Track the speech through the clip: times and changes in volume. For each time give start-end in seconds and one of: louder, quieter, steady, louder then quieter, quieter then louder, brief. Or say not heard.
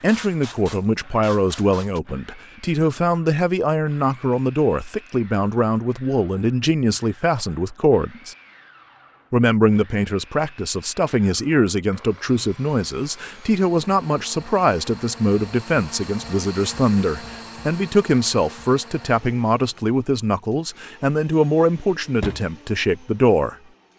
0.0-8.3 steady
9.3-23.6 steady.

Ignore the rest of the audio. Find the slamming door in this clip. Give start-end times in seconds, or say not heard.
21.8-22.4.